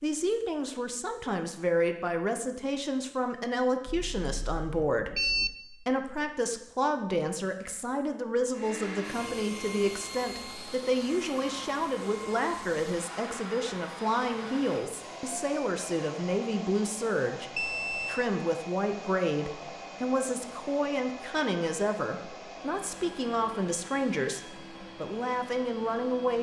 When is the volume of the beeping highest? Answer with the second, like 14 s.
5 s.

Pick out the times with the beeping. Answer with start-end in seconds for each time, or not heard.
3.9-5.5, 17.6-18.3.